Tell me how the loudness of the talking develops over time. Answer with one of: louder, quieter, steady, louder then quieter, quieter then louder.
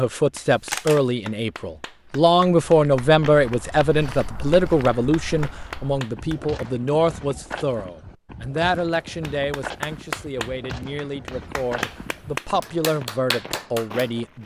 quieter.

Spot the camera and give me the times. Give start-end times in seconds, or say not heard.
0.4-1.0.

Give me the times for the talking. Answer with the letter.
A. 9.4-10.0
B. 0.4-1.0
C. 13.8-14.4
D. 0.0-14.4
D.